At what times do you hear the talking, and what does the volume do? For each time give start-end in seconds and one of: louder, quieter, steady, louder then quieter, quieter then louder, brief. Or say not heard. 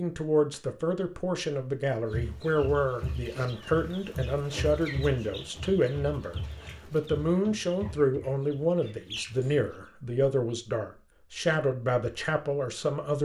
0.0-13.2 steady.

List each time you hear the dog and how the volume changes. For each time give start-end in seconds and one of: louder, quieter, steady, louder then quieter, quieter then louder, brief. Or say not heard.
not heard.